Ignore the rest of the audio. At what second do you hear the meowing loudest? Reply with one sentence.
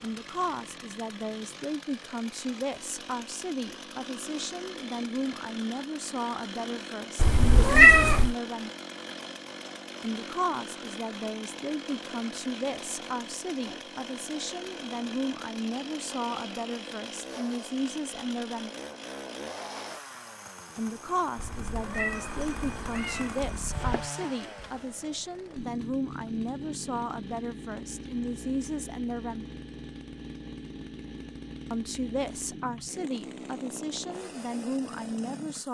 The volume of the meowing peaks at 8 seconds.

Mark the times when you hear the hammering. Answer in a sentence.
You can't hear the hammering here.